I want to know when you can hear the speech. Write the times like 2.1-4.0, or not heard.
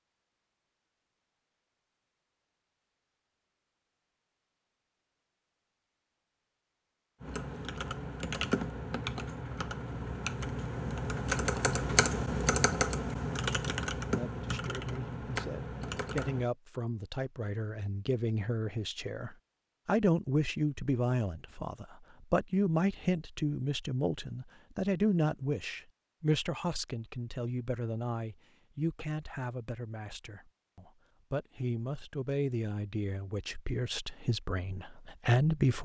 14.1-35.7.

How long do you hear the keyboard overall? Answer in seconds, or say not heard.
9 s.